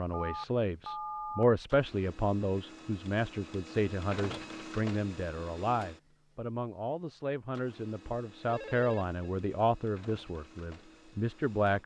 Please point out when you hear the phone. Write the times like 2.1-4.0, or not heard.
0.1-1.4, 8.4-9.3.